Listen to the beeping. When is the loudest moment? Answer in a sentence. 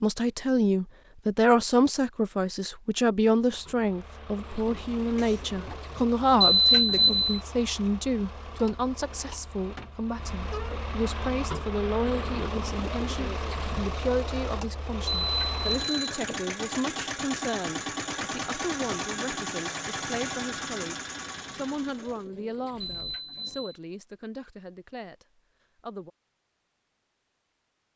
The volume of the beeping peaks at 7 seconds.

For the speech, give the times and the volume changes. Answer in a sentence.
The speech can be heard from 0.0 to 26.1 s, getting quieter.